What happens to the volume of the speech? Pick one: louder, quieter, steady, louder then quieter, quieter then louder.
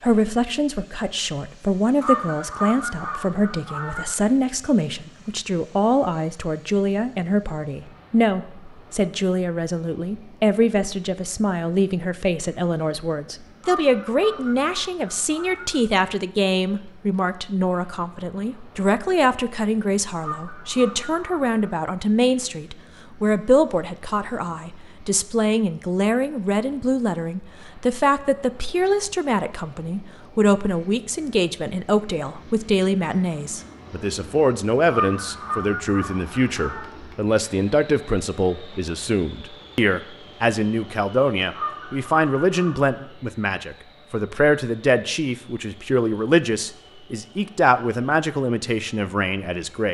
steady.